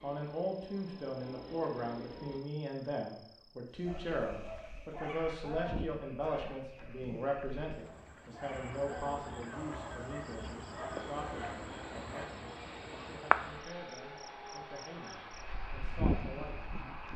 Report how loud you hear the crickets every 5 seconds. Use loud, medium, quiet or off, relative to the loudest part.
quiet, medium, loud, loud.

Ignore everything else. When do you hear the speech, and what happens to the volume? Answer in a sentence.
The speech can be heard from 0.0 to 16.7 s, getting quieter.